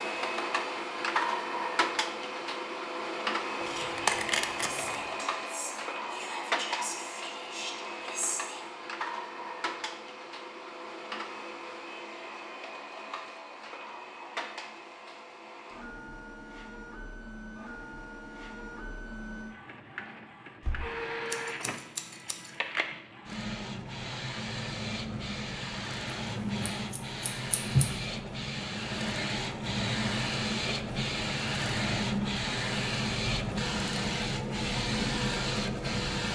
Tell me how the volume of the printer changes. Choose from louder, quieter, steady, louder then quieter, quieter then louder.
quieter then louder.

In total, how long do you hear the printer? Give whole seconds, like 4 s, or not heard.
36 s.